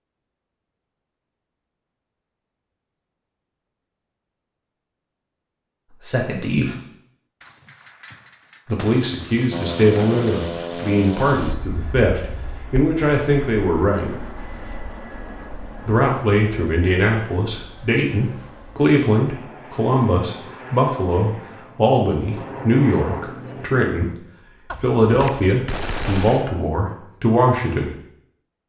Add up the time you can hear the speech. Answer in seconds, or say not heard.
18 s.